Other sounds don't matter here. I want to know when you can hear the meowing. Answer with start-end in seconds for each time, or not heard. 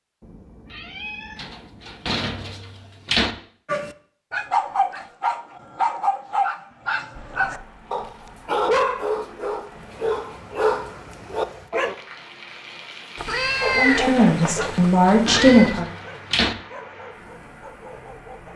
0.2-2.2, 13.2-15.8.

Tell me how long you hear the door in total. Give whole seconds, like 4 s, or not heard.
4 s.